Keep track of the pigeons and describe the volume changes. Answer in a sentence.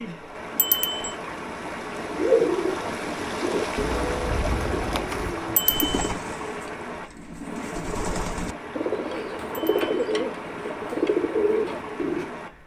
The loudness of the pigeons goes down, then up.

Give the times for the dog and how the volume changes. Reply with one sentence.
You can't hear the dog here.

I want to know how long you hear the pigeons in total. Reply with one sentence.
You can hear the pigeons for 10 seconds altogether.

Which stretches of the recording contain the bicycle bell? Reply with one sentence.
The bicycle bell can be heard from 0.6 to 1.1 s, from 5.5 to 6.1 s and from 9.5 to 9.9 s.